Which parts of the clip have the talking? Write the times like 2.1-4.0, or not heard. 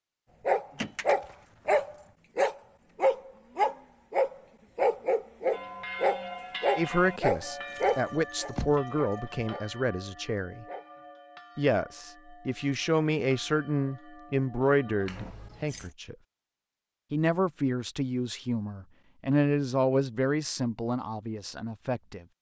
6.8-10.7, 11.6-16.1, 17.1-22.2.